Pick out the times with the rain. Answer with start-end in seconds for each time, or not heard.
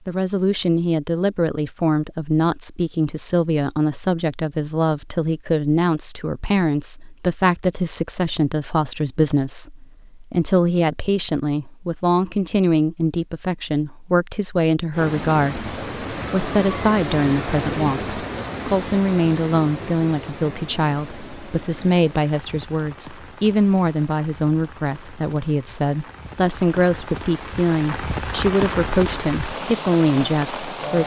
14.9-31.0.